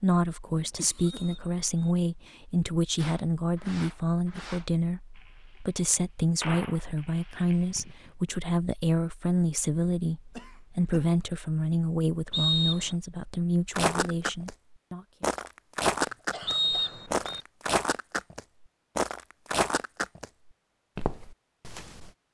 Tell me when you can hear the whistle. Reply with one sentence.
You can hear the whistle from 0.9 to 1.9 s, from 12.3 to 12.9 s and from 16.4 to 17.4 s.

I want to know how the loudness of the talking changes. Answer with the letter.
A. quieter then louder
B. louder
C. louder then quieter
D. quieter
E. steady
E.